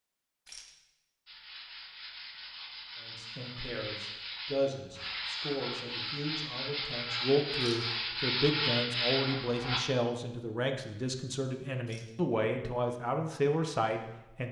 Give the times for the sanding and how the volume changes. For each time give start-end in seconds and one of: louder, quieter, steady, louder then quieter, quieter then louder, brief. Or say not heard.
1.2-9.8 louder.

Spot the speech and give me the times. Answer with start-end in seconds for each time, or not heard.
3.0-14.4.